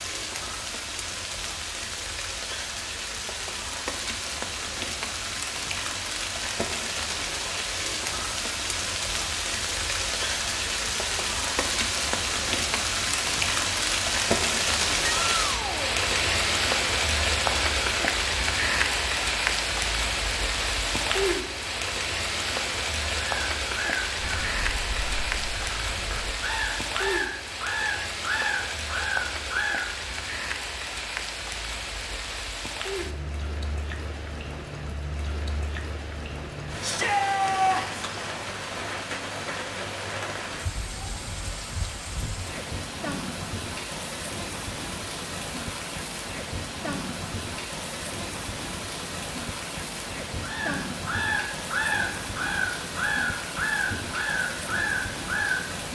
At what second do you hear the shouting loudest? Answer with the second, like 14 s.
38 s.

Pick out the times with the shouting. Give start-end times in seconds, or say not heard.
15.2-15.9, 36.8-38.0.